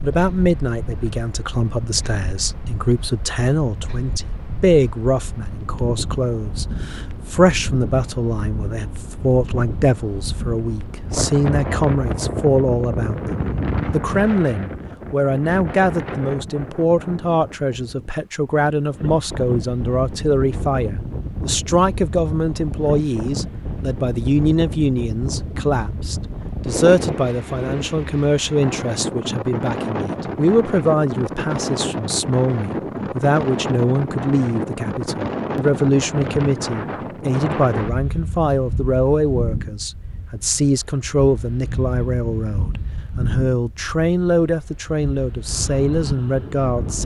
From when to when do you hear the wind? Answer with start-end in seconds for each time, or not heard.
0.0-47.0.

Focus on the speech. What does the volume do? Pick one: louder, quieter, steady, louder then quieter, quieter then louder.
steady.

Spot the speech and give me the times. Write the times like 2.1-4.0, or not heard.
0.0-47.0.